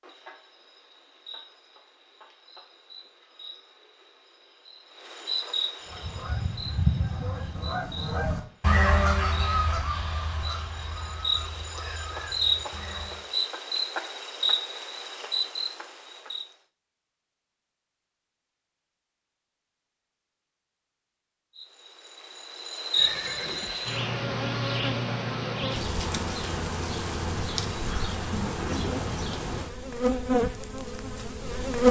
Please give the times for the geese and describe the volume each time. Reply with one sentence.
You can hear the geese from 5.8 to 13.2 s, getting quieter.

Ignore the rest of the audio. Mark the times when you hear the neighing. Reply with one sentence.
The neighing can be heard from 22.9 to 24.2 s.